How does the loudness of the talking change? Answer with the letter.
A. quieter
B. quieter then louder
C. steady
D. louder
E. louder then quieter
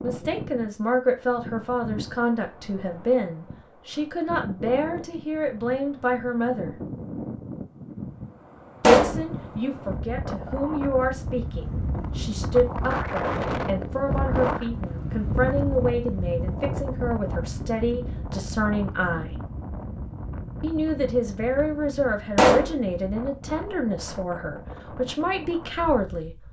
C.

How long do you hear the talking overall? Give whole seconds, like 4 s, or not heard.
23 s.